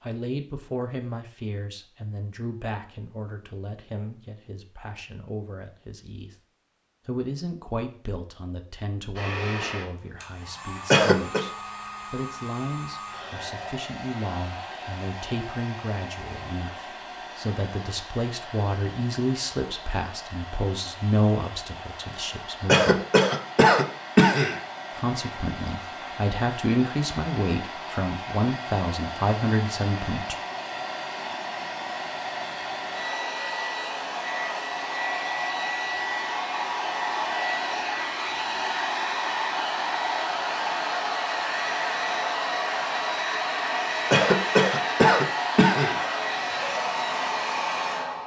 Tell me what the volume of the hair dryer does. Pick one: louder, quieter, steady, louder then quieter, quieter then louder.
louder.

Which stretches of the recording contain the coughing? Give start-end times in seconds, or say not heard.
10.9-11.4, 22.6-24.6, 44.1-46.0.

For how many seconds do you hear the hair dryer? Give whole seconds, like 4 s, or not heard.
39 s.